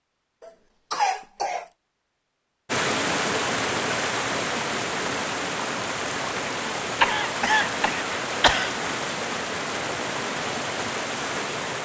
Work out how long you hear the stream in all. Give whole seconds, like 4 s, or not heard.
9 s.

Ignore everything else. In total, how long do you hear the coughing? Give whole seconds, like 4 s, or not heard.
3 s.